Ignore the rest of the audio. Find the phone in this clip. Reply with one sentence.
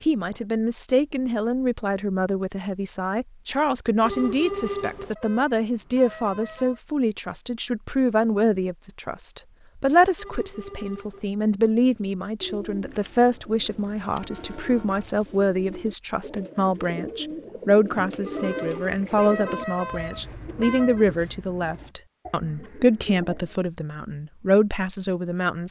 The phone can be heard from 4.0 to 5.2 s, from 10.2 to 11.3 s and from 18.2 to 19.1 s.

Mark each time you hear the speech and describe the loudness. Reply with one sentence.
You can hear the speech from 0.0 to 25.6 s, at a steady volume.